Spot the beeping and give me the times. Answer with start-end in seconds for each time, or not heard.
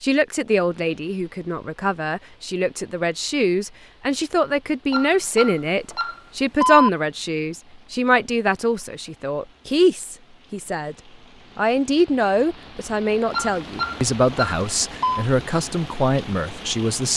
4.9-6.9, 13.3-15.2.